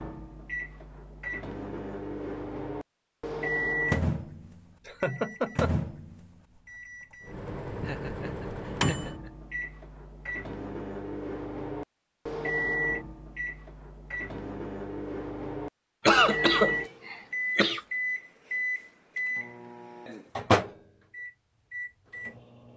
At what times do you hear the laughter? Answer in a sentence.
You can hear the laughter from 4.8 to 5.7 s, from 7.8 to 9.3 s and from 16.1 to 17.8 s.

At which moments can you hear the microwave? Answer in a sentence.
You can hear the microwave from 0.0 to 22.7 s.